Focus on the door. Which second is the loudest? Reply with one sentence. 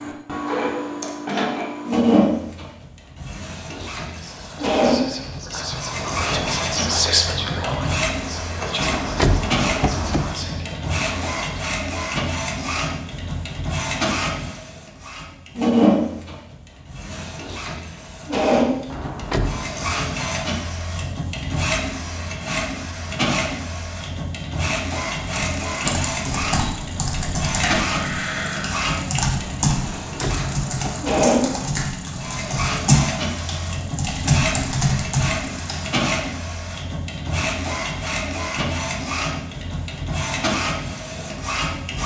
The loudest moment of the door is at 9 seconds.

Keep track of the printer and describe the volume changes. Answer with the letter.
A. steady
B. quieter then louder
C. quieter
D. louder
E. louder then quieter
A.